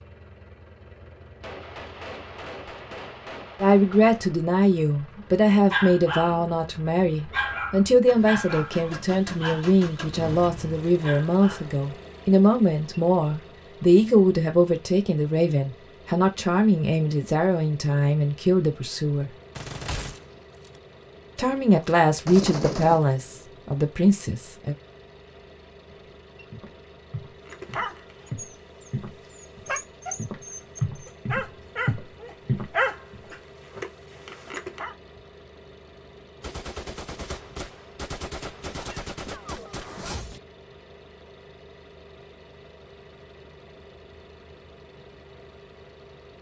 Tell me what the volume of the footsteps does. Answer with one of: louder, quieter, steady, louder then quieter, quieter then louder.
louder.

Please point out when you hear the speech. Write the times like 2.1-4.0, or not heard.
3.6-19.3, 21.4-24.8.